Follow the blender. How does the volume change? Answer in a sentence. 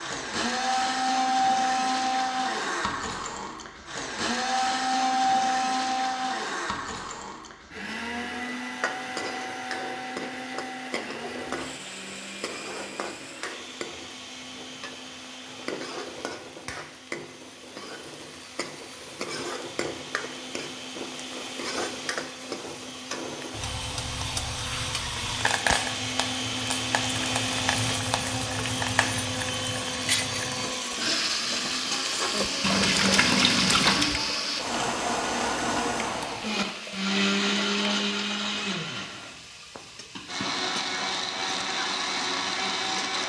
The loudness of the blender goes down, then up.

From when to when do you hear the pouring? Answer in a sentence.
The pouring can be heard from 32.6 to 34.2 s.